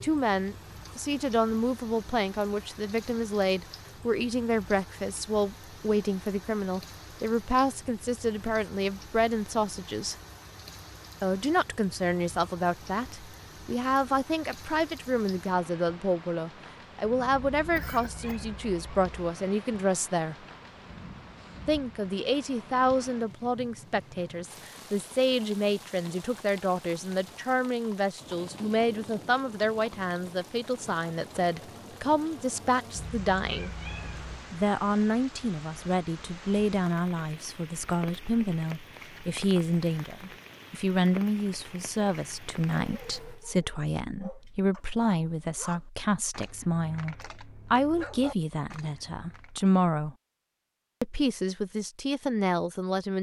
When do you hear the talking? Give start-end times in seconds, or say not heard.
0.0-10.2, 11.2-20.4, 21.6-33.7, 34.5-50.1, 51.0-53.1.